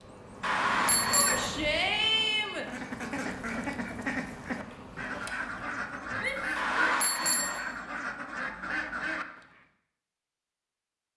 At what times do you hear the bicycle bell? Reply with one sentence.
The bicycle bell can be heard from 0.4 to 1.5 s and from 6.5 to 7.6 s.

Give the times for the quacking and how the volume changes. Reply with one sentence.
You can hear the quacking from 2.6 to 9.6 s, at a steady volume.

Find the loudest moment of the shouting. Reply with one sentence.
The loudest moment of the shouting is at 2 seconds.